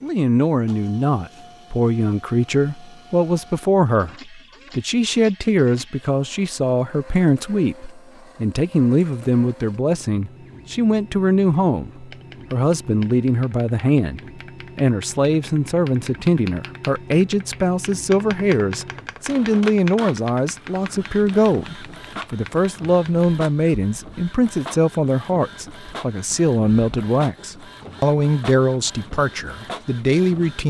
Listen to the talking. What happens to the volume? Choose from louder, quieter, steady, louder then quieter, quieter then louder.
steady.